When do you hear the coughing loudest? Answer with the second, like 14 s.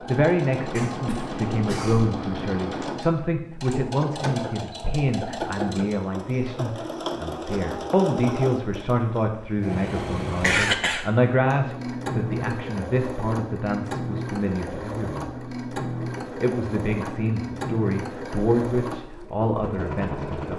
11 s.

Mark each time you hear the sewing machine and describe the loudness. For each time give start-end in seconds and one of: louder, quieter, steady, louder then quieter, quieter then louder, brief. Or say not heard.
0.0-20.5 steady.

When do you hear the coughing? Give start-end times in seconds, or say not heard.
0.8-2.1, 10.4-11.1.